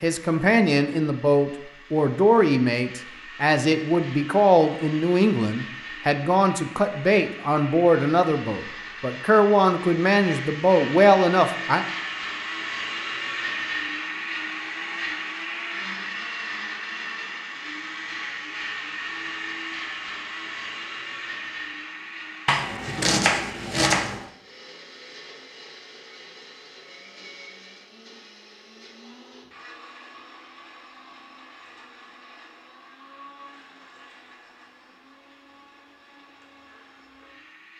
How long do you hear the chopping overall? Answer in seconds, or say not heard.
2 s.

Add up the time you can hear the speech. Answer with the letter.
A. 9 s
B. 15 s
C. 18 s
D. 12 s
D.